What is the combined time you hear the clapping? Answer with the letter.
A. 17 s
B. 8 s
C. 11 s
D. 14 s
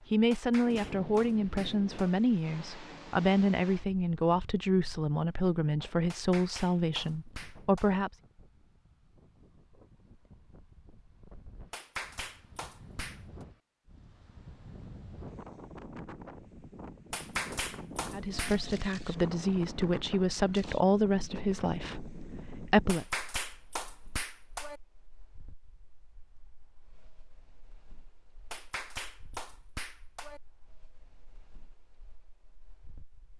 C.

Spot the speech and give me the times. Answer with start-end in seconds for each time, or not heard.
0.1-8.2, 18.1-23.1.